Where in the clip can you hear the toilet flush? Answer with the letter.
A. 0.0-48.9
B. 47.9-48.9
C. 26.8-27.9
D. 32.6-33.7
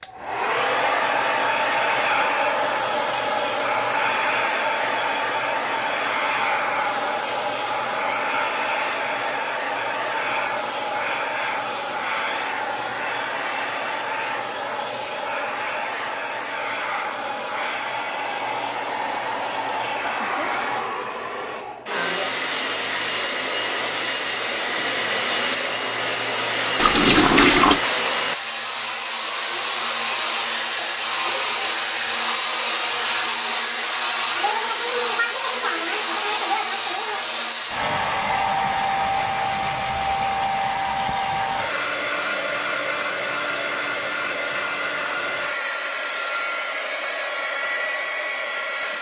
C.